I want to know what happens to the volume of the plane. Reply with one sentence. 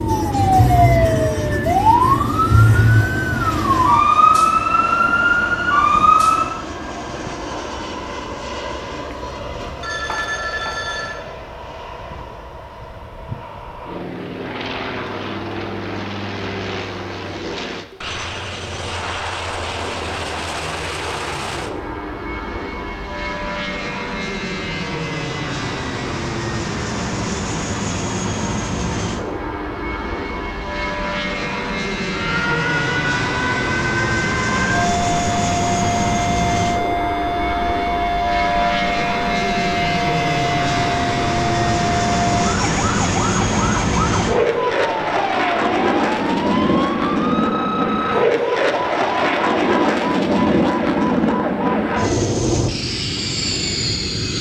The volume of the plane goes up.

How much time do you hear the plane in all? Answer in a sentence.
You can hear the plane for 54 seconds altogether.